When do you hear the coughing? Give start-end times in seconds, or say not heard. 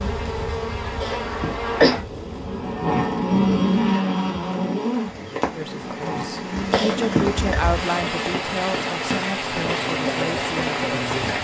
1.0-1.9, 6.7-7.5.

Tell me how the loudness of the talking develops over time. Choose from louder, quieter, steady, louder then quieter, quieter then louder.
louder then quieter.